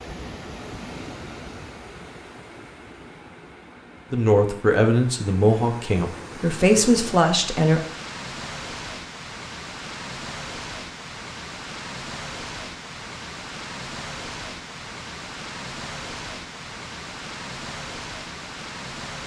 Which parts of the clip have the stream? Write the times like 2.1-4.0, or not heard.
0.0-19.2.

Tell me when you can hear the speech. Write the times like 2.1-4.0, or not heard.
4.1-7.8.